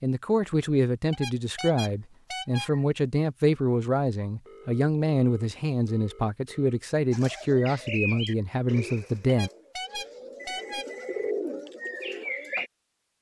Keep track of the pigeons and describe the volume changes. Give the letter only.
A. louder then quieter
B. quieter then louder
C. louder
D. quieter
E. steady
B.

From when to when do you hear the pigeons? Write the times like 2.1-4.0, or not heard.
7.1-12.7.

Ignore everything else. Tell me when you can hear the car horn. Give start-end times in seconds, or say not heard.
1.1-2.7, 9.2-11.3.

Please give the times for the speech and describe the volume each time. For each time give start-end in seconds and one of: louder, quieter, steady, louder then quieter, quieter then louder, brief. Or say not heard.
0.0-9.5 steady.